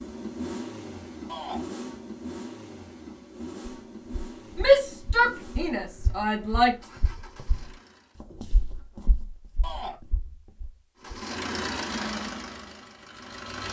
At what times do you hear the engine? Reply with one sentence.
The engine can be heard from 0.0 to 8.2 s and from 11.0 to 13.6 s.